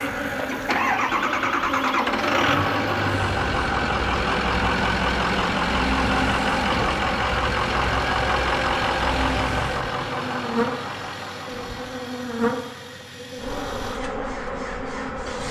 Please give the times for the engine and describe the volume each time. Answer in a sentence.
The engine can be heard from 0.0 to 15.4 s, getting quieter.